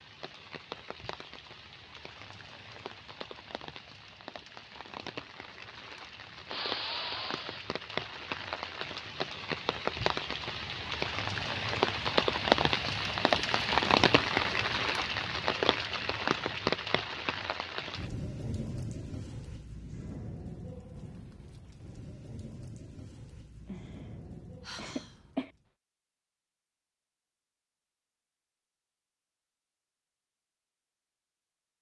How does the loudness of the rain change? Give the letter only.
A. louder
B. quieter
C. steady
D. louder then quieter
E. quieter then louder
D.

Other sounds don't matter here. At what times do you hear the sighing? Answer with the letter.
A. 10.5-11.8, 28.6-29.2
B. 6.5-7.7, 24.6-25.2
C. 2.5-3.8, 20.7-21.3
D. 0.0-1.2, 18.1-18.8
B.